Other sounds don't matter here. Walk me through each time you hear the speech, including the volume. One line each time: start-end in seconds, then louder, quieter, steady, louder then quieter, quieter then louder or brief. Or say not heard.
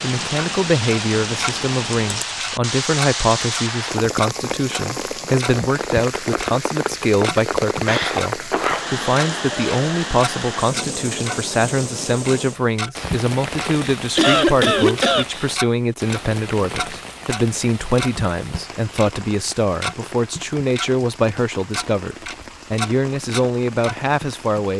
0.0-24.7 steady.